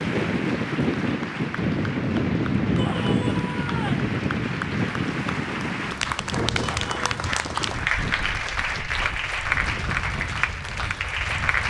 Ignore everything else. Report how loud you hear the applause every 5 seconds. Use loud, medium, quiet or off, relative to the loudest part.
medium, loud, loud.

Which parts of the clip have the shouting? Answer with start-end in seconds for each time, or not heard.
2.8-4.1, 6.6-7.1.